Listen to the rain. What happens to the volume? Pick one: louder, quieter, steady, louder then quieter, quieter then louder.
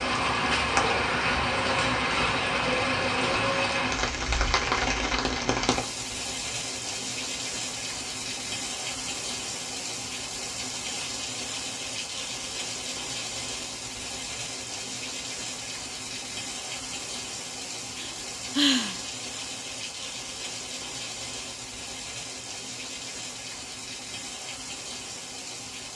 quieter.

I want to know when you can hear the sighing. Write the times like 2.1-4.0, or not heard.
18.0-19.0.